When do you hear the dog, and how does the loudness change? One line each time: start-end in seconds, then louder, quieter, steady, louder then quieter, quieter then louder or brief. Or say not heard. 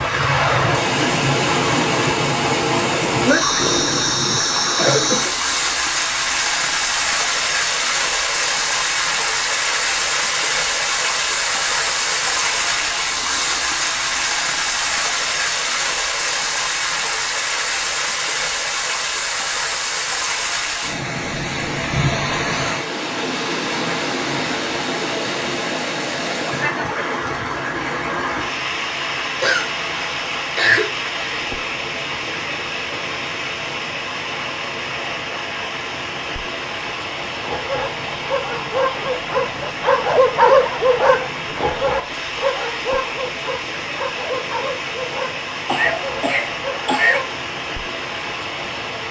37.5-47.4 louder then quieter.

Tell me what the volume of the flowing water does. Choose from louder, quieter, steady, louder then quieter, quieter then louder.
quieter.